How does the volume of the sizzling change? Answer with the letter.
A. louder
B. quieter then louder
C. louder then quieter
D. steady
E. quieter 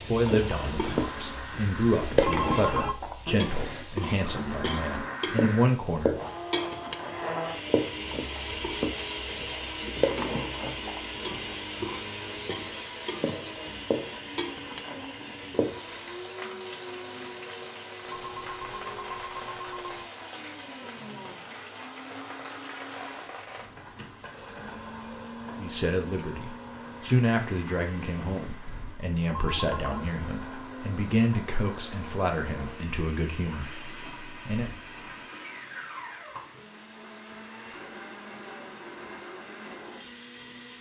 E.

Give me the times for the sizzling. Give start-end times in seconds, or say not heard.
0.0-40.7.